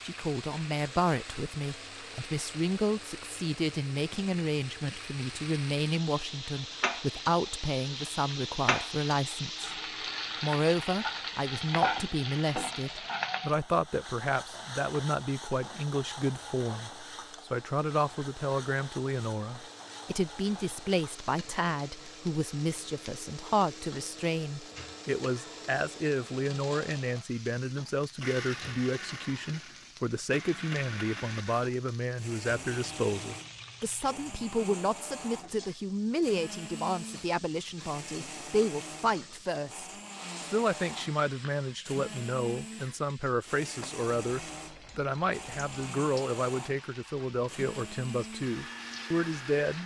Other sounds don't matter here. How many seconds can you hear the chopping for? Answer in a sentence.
The chopping can't be heard in this clip.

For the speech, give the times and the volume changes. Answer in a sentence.
You can hear the speech from 0.0 to 9.7 s, at a steady volume; and from 10.4 to 49.8 s, at a steady volume.